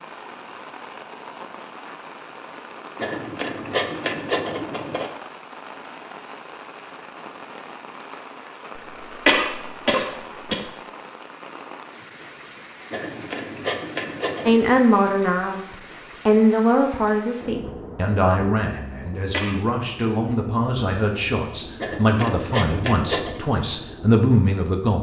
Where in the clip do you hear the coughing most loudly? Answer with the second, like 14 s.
9 s.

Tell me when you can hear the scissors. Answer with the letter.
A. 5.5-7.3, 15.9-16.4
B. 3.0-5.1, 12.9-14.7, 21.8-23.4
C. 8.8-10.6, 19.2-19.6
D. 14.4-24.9
B.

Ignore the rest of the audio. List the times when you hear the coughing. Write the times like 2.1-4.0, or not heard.
8.8-10.6, 19.2-19.6.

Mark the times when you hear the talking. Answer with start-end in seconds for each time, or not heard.
14.4-24.9.